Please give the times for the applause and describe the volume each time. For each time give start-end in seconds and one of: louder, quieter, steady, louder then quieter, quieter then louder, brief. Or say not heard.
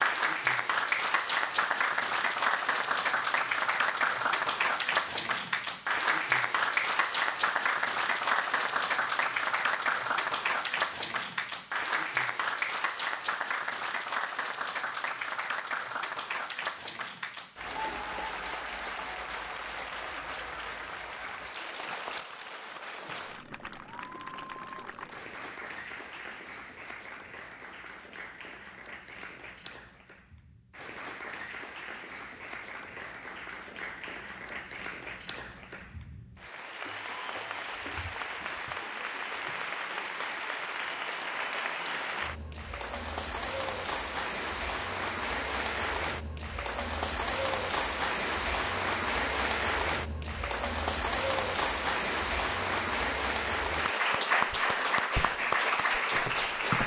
0.0-56.8 quieter then louder.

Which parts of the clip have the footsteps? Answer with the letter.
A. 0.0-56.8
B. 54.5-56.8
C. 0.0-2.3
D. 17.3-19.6
B.